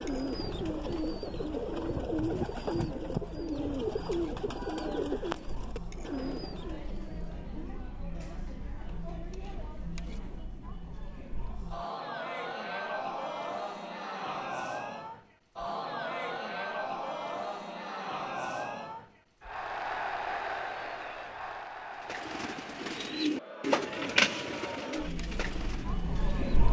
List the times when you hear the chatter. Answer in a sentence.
The chatter can be heard from 0.0 to 26.6 s.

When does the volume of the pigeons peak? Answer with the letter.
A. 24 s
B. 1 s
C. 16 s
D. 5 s
A.